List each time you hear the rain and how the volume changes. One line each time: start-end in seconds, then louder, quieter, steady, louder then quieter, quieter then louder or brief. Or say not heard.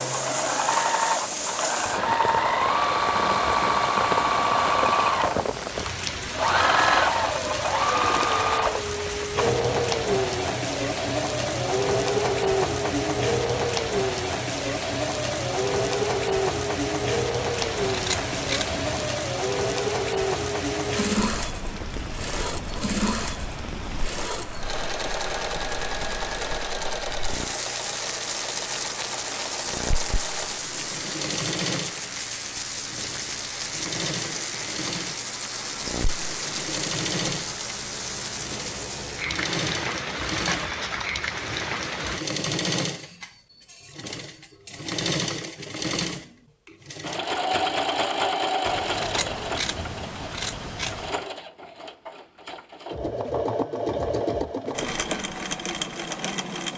0.0-42.2 steady.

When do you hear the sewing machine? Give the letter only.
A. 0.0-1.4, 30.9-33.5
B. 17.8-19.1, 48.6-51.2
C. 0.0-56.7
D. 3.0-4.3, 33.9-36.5
C.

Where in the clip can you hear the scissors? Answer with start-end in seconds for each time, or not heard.
17.8-19.1, 48.6-51.2.